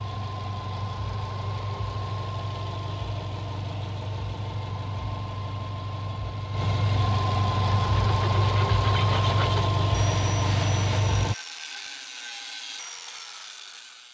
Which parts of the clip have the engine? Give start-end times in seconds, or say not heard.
0.0-11.3.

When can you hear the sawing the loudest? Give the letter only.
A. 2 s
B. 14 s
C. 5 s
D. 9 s
D.